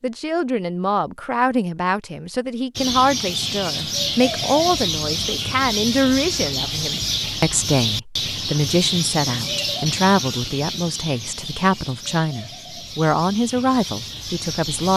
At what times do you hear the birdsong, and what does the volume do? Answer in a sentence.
You can hear the birdsong from 2.8 to 14.9 s, getting quieter.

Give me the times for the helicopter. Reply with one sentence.
You can't hear the helicopter here.